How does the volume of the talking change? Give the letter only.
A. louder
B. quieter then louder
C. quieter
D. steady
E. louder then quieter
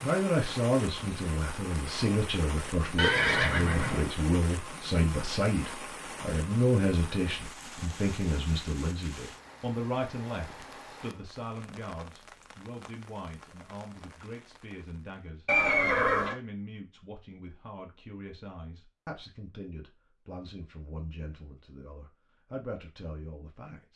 C.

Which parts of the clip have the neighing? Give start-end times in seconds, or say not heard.
3.0-4.1, 15.4-16.4.